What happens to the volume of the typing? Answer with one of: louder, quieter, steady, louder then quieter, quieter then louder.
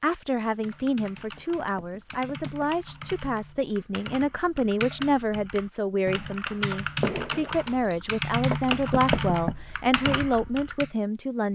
louder.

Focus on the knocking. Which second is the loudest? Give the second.
9 s.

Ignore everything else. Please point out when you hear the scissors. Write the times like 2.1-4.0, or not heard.
7.0-8.6.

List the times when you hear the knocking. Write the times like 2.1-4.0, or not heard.
1.4-2.8, 8.7-9.6.